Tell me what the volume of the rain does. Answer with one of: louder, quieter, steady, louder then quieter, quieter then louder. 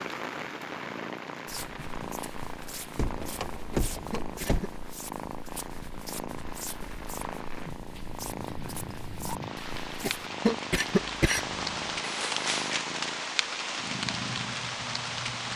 quieter then louder.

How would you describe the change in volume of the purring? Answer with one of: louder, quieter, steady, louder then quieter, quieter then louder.
steady.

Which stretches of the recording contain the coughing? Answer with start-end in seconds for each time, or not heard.
3.7-4.8, 10.0-11.9.